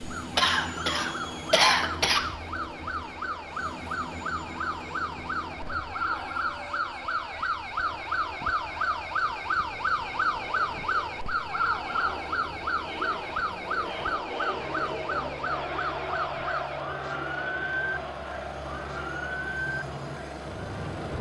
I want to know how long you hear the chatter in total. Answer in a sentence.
You can hear the chatter for 21 seconds altogether.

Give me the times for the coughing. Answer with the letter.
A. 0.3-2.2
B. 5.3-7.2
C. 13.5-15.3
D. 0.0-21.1
A.